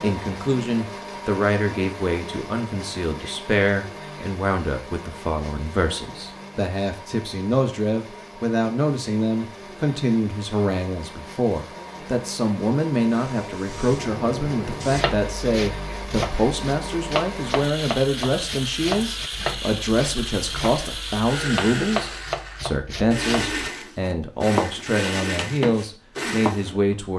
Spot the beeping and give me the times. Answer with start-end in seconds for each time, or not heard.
not heard.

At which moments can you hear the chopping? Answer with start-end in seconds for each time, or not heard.
14.9-26.7.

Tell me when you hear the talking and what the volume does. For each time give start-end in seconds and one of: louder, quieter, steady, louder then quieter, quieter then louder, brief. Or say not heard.
0.0-27.1 steady.